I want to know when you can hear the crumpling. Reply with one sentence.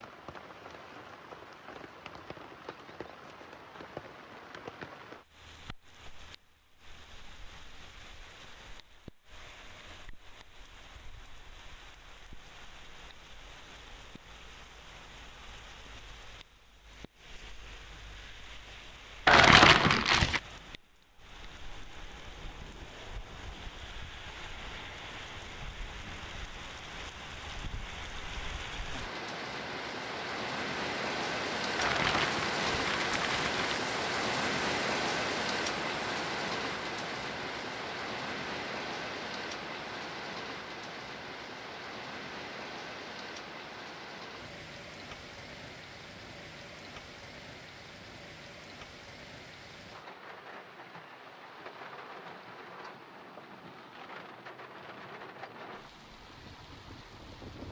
The crumpling can be heard from 19.2 to 20.4 s and from 31.8 to 33.8 s.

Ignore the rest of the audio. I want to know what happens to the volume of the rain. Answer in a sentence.
The loudness of the rain goes up, then down.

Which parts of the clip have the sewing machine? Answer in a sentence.
You can't hear the sewing machine here.